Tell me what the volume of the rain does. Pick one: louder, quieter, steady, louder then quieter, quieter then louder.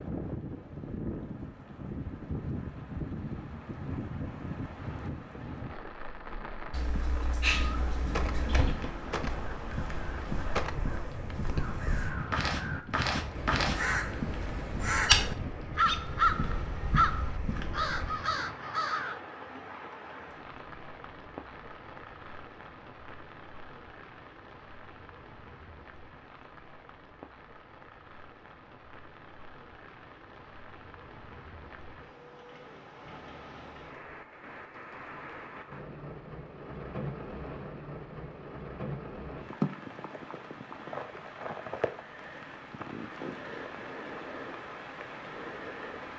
quieter then louder.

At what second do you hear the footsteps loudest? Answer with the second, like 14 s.
15 s.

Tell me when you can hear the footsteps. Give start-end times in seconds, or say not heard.
8.2-18.1.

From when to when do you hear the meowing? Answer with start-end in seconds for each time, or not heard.
6.7-8.8.